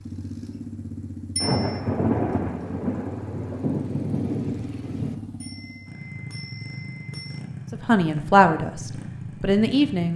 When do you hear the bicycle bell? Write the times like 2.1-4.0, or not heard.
1.4-1.8, 5.4-7.4.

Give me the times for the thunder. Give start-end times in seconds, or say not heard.
1.4-5.2.